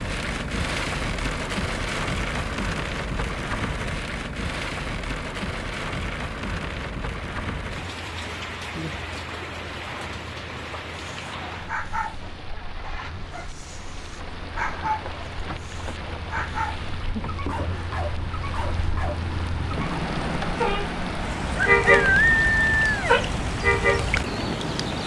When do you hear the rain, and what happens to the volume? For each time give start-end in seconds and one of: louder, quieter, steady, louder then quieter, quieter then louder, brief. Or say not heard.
0.0-25.0 quieter then louder.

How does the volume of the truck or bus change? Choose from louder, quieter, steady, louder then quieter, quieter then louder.
louder.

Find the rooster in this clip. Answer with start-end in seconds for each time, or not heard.
21.6-23.1.